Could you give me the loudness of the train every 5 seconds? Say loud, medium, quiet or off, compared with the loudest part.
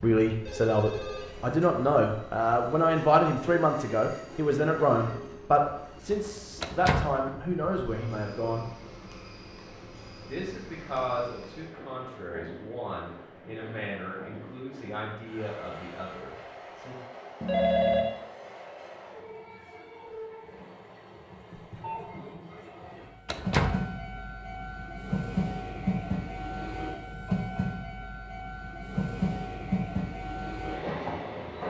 quiet, quiet, quiet, quiet, medium, loud, loud.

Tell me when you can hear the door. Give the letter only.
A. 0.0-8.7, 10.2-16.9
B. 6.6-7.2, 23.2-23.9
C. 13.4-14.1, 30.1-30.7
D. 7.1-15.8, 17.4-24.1
B.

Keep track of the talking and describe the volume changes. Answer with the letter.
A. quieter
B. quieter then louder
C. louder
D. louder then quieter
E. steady
A.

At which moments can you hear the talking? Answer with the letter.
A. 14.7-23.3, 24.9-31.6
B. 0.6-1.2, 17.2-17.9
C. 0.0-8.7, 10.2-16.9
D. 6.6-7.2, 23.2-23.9
C.